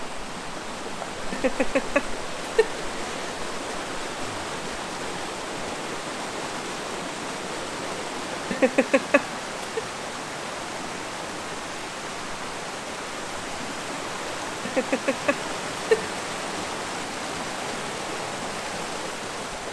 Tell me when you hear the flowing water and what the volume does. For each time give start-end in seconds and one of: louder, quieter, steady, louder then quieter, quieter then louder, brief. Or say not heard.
0.0-19.6 steady.